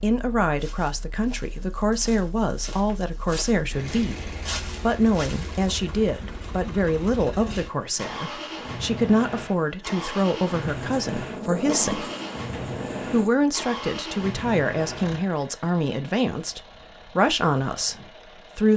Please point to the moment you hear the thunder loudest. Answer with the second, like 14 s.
12 s.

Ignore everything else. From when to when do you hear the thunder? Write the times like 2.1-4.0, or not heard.
10.6-13.3.